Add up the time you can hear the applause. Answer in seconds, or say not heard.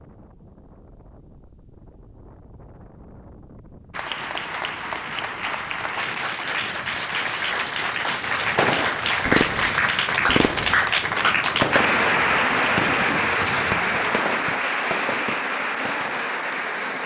13 s.